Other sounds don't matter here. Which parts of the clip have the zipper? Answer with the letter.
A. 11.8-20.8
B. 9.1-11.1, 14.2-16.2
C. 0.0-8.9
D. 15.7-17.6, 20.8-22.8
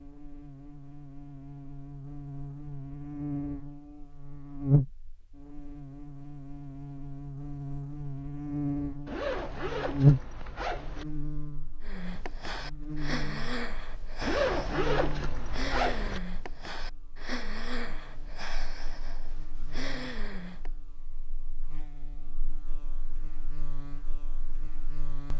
B.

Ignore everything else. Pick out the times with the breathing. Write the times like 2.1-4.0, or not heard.
11.8-20.8.